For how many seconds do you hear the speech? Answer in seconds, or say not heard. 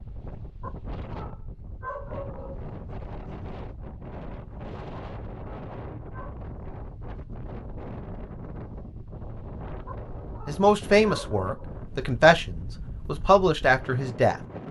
4 s.